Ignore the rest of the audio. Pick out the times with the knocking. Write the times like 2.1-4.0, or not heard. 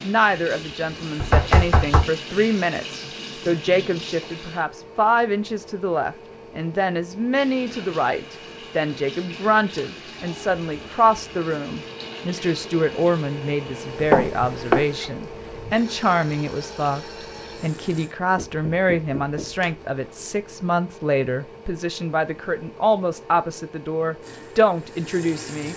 1.2-2.0, 14.1-14.8, 18.4-19.7.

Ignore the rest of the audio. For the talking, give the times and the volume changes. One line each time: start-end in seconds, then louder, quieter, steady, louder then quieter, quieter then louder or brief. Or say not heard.
0.0-25.7 steady.